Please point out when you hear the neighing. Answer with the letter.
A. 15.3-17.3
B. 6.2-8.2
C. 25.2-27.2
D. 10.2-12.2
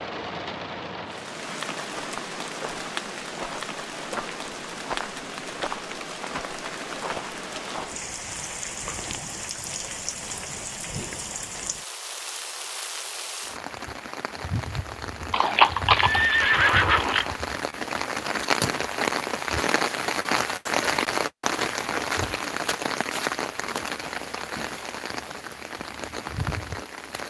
A.